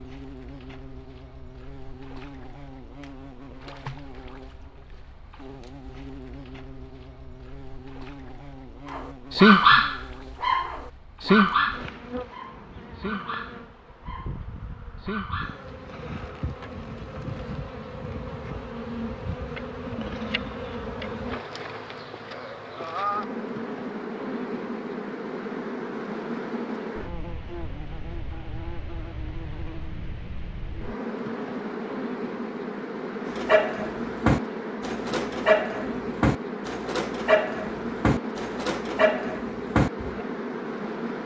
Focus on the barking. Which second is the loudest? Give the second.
10 s.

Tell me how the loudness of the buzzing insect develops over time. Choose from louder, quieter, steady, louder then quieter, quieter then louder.
louder.